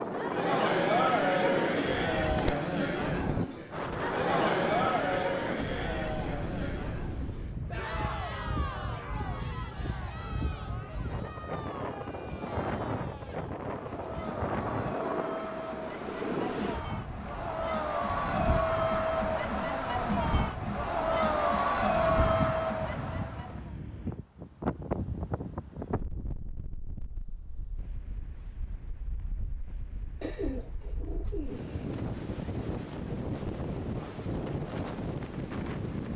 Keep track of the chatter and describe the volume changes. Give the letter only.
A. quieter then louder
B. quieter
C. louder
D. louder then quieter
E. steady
A.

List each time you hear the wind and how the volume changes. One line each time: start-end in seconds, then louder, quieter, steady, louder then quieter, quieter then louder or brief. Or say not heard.
0.0-36.1 steady.